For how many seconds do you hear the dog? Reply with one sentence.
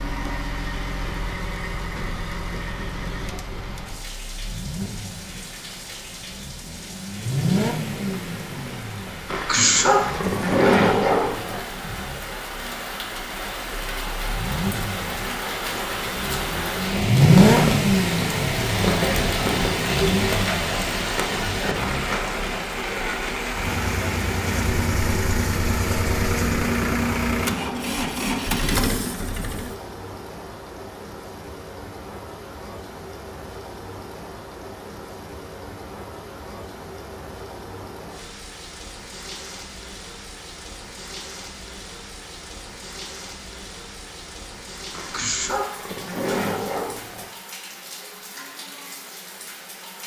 The dog can be heard for 5 seconds in total.